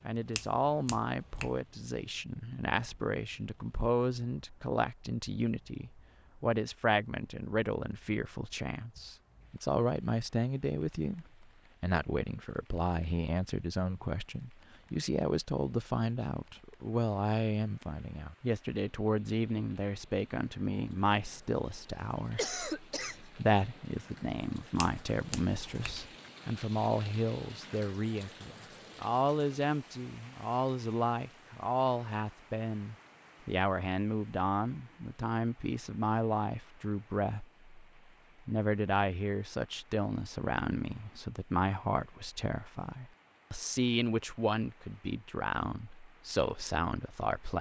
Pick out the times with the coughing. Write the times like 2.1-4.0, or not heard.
22.4-23.2.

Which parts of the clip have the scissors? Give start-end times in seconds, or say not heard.
not heard.